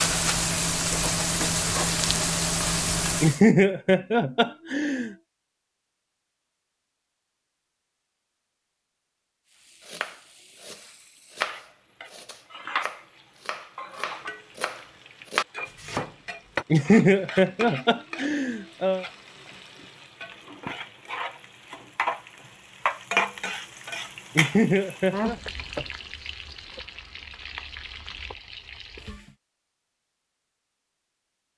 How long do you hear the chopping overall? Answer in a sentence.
The chopping can be heard for 7 seconds in total.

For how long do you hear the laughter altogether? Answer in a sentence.
You can hear the laughter for 5 seconds altogether.